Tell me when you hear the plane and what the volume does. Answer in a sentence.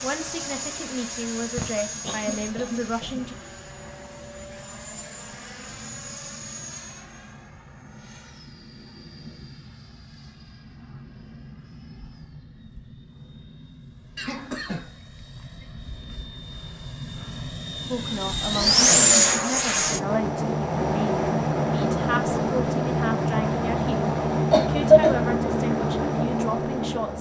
You can hear the plane from 0.0 to 27.1 s, getting quieter then louder.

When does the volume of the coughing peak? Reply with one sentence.
The volume of the coughing peaks at 25 seconds.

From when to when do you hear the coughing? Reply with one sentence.
You can hear the coughing from 1.6 to 3.2 s, from 14.2 to 14.9 s and from 24.5 to 25.1 s.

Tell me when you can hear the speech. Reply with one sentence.
The speech can be heard from 0.0 to 3.4 s and from 17.9 to 27.1 s.